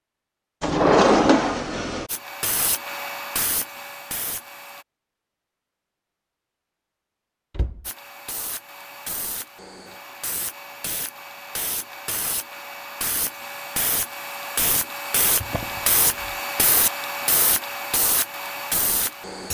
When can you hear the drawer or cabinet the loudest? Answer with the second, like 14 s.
1 s.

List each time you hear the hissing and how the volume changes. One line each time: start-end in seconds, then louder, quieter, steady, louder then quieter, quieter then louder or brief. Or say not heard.
2.0-4.8 brief
7.8-19.4 louder.